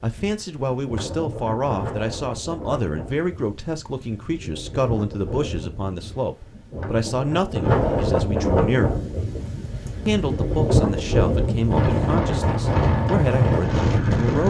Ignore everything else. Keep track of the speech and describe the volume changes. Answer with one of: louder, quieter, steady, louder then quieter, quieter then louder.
steady.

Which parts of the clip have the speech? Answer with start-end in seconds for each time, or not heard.
0.0-9.0, 10.1-14.4.